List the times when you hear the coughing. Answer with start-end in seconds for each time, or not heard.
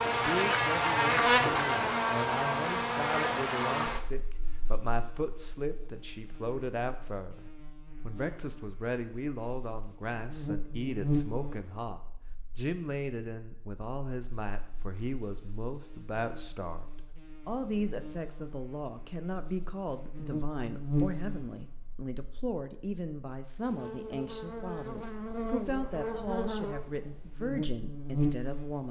not heard.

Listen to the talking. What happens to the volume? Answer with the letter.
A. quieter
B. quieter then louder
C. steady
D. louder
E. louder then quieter
C.